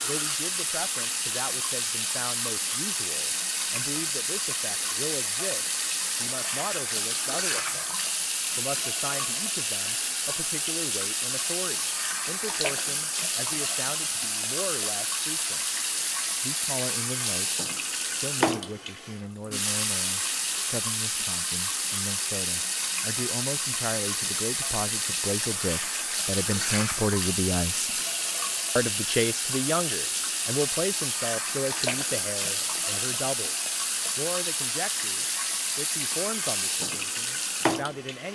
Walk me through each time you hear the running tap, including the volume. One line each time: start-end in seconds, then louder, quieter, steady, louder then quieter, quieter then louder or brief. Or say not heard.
0.0-38.3 steady.